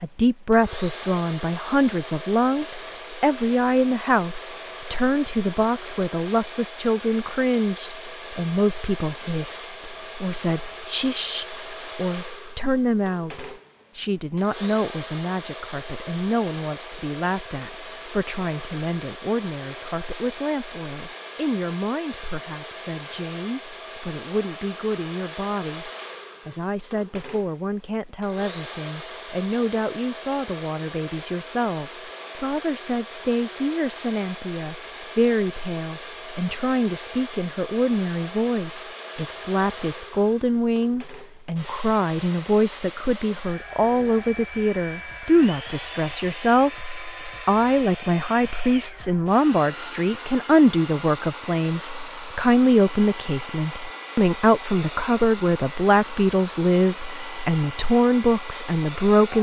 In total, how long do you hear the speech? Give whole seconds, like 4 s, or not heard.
59 s.